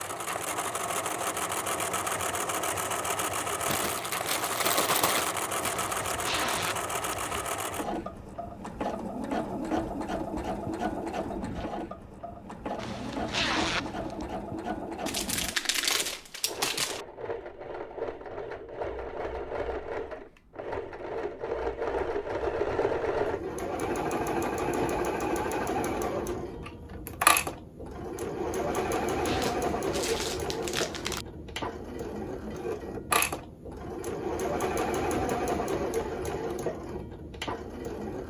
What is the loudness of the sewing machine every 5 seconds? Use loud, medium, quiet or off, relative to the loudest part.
loud, loud, medium, medium, loud, loud, loud, loud.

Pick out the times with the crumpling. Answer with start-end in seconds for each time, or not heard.
3.6-5.9, 15.1-17.1, 29.3-31.2.